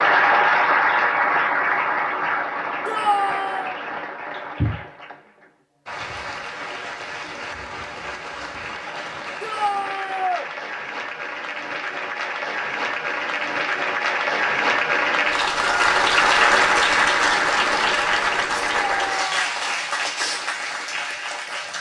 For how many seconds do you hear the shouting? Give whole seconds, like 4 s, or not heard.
3 s.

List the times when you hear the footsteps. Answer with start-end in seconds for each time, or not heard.
not heard.